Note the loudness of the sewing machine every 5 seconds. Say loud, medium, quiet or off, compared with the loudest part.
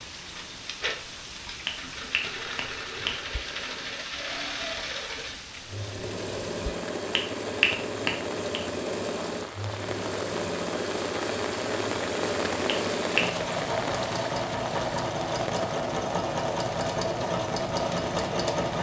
medium, medium, loud, loud.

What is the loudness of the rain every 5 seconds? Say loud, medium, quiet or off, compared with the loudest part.
medium, medium, loud, medium.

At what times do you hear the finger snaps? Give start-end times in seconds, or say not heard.
1.6-3.6, 7.2-8.6, 12.7-13.3.